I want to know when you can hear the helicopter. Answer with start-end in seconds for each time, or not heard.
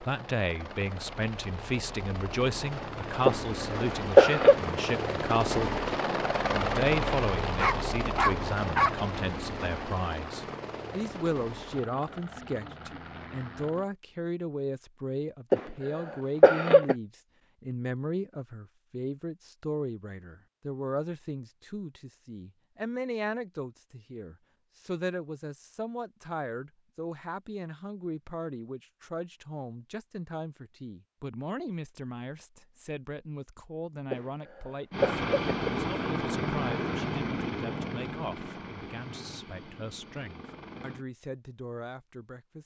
0.0-13.9, 34.9-41.0.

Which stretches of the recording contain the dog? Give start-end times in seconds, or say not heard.
7.6-8.9.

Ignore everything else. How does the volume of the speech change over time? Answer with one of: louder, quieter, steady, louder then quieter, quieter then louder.
quieter.